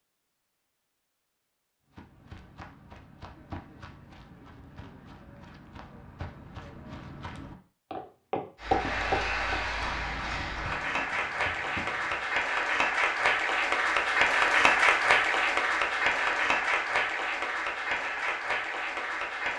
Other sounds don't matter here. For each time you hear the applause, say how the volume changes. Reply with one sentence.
The applause can be heard from 8.6 to 19.5 s, getting louder then quieter.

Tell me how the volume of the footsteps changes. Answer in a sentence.
The volume of the footsteps goes up, then down.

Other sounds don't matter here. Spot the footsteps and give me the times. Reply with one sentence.
You can hear the footsteps from 1.9 to 12.4 s.